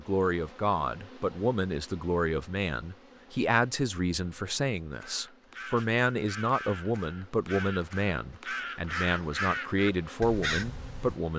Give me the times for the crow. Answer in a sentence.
You can hear the crow from 5.0 to 11.2 s.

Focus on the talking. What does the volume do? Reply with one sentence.
The loudness of the talking stays about the same.